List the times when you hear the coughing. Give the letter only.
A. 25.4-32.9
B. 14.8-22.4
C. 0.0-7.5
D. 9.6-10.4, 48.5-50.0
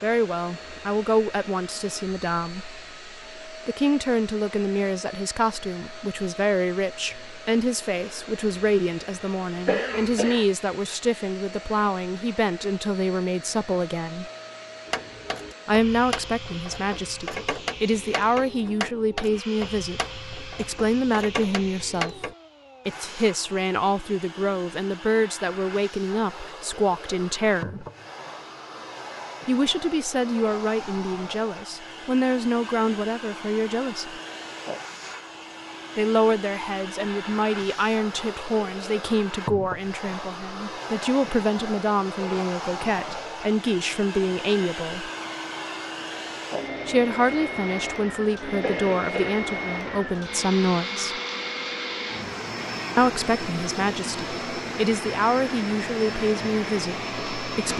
D.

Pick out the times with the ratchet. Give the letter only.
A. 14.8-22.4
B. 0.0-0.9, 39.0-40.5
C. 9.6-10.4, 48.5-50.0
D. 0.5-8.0
A.